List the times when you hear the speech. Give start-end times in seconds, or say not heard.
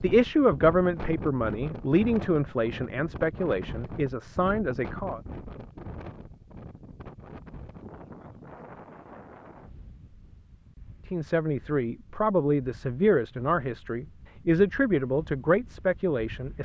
0.0-5.2, 11.1-16.5.